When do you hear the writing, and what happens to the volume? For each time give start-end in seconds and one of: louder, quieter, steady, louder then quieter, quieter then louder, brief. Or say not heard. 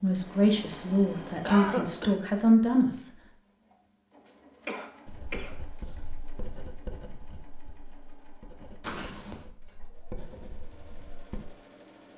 5.0-11.4 quieter then louder.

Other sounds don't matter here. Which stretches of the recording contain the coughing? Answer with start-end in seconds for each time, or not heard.
1.4-2.1, 4.7-5.5, 8.8-9.4.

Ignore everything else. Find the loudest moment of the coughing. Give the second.
2 s.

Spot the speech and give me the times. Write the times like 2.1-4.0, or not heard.
0.0-3.1.